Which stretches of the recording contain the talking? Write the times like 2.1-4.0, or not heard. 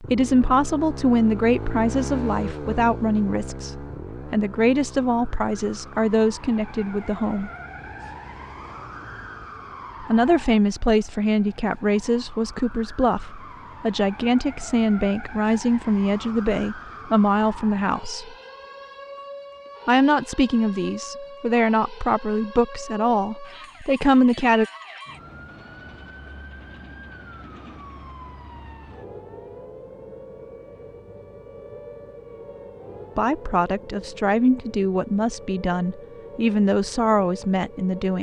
0.0-7.5, 10.0-18.4, 19.9-24.6, 33.1-38.1.